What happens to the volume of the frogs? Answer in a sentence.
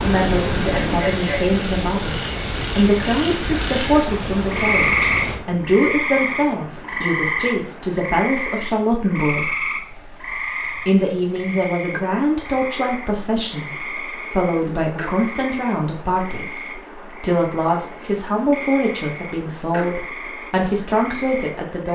The loudness of the frogs goes up, then down.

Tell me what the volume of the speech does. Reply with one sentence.
The loudness of the speech stays about the same.